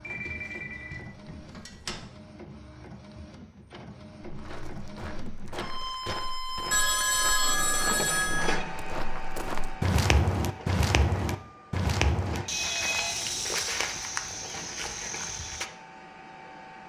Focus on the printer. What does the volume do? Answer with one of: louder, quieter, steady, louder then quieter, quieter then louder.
louder then quieter.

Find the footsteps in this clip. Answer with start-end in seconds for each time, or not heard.
4.2-15.7.